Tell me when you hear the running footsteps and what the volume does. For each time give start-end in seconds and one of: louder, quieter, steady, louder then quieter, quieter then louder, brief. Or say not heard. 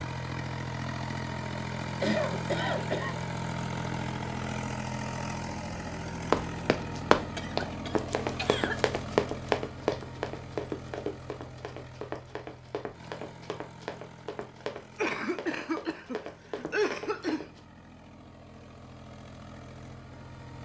6.3-17.6 quieter.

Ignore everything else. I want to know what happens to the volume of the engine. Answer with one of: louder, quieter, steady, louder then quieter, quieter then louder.
quieter.